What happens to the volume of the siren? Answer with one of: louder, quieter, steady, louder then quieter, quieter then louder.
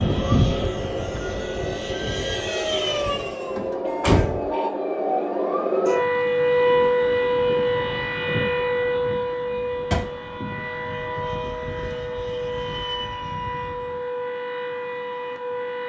louder then quieter.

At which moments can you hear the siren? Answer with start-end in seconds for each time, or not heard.
0.0-15.8.